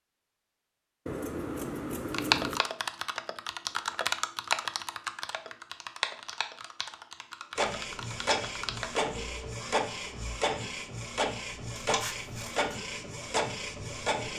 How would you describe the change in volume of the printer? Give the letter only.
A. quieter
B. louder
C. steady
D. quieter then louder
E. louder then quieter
C.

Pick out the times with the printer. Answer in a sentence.
You can hear the printer from 7.5 to 14.3 s.